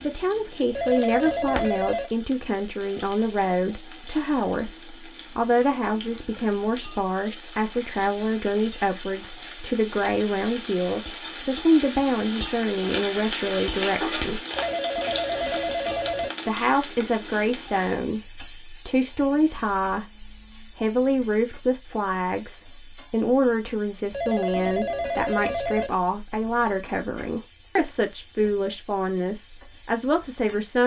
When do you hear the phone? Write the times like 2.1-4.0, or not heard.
0.7-2.1, 14.5-16.3, 24.1-25.9.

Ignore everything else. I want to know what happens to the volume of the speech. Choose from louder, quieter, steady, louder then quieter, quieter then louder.
steady.